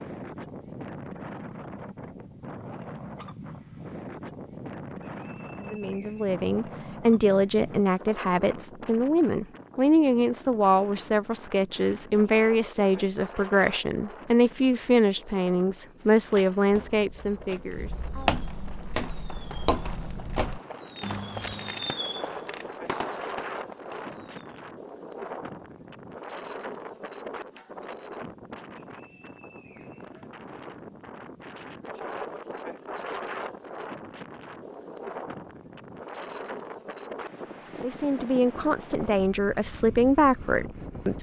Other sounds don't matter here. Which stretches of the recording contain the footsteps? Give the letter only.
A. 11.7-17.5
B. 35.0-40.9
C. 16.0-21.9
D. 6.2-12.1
C.